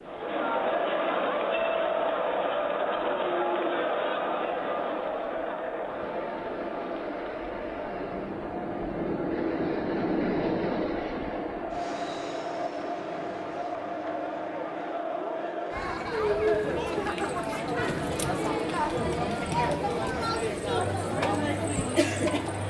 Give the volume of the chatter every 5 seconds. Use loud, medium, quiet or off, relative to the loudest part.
loud, medium, medium, loud, loud.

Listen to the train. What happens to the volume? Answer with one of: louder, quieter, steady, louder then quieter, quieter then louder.
louder then quieter.